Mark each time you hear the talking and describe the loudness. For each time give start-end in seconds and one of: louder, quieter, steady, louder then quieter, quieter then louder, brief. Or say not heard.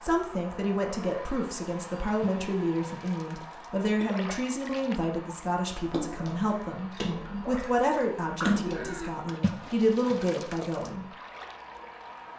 0.0-11.1 steady.